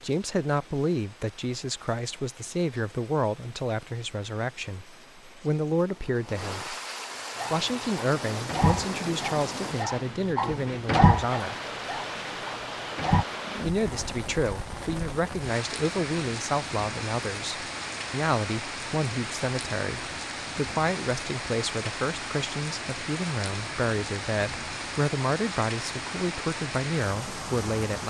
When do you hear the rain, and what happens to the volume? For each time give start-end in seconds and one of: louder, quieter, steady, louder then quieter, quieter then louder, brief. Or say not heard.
0.0-28.0 louder.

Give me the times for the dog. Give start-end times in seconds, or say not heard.
7.3-13.2.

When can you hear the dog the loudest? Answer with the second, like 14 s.
11 s.